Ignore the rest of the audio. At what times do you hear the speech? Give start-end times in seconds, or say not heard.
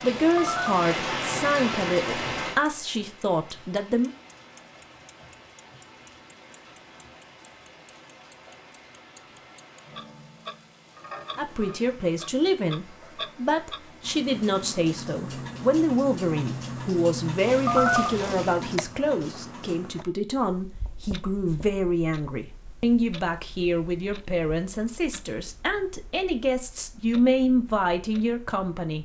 0.0-4.1, 11.3-29.0.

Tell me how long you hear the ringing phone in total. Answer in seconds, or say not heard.
2 s.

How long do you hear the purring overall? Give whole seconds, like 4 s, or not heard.
not heard.